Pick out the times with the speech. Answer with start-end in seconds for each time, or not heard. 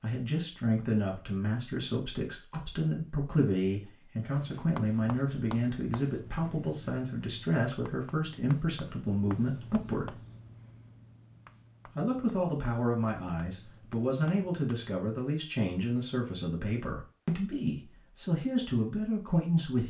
0.0-10.2, 11.8-19.8.